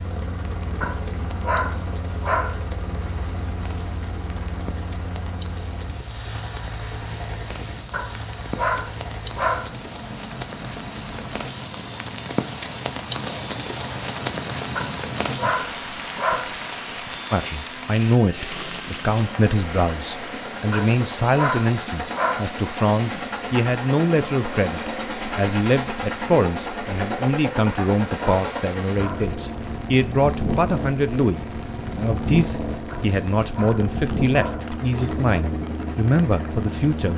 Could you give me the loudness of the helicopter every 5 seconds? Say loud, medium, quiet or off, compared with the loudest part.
medium, medium, medium, medium, loud, loud, loud, loud.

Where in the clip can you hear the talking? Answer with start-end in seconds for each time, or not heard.
17.3-37.1.